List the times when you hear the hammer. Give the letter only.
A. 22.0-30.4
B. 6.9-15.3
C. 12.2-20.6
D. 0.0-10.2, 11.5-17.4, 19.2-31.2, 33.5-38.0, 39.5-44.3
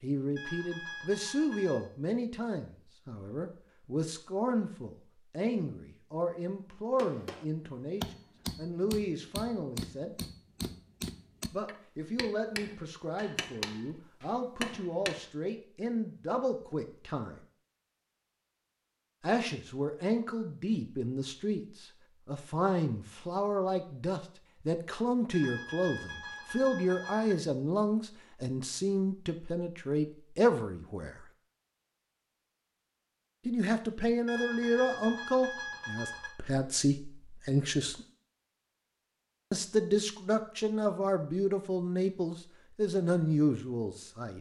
B.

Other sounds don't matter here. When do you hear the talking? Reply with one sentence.
The talking can be heard from 0.0 to 10.2 s, from 11.5 to 17.4 s, from 19.2 to 31.2 s, from 33.5 to 38.0 s and from 39.5 to 44.3 s.